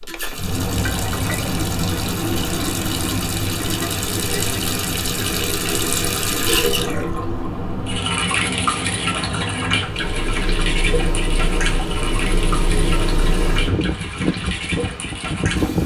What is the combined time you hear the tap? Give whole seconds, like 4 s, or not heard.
16 s.